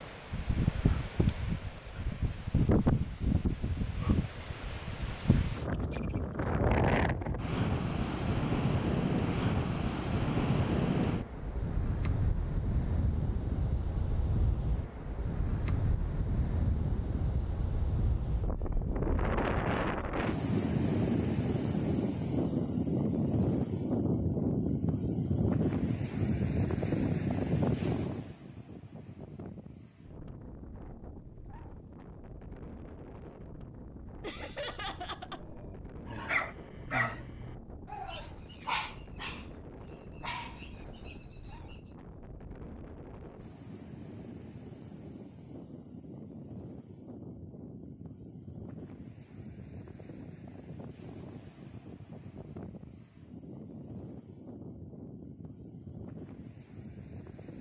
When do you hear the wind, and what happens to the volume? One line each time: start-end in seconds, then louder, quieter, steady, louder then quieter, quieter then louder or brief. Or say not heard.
0.0-57.5 quieter.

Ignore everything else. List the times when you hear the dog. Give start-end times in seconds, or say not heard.
35.2-41.8.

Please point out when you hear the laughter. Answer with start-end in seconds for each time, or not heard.
34.2-35.5.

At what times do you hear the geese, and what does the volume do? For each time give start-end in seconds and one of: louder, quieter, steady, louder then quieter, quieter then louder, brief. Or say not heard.
not heard.